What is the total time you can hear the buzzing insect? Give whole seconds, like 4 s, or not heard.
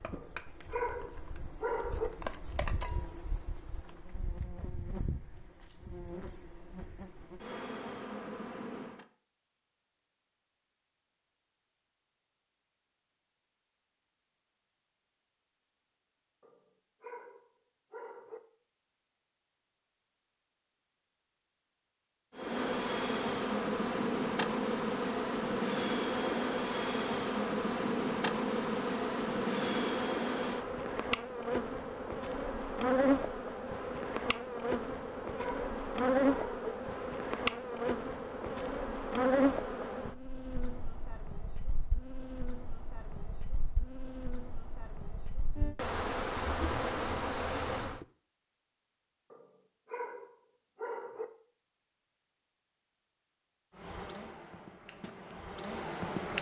37 s.